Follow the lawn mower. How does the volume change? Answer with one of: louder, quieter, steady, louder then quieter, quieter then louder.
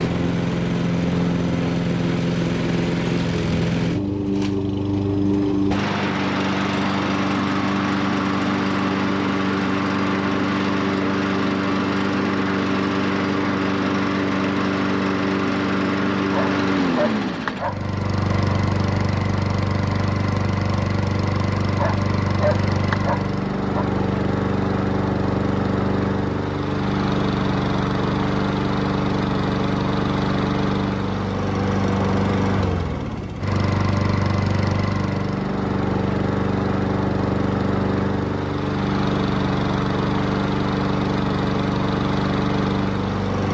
steady.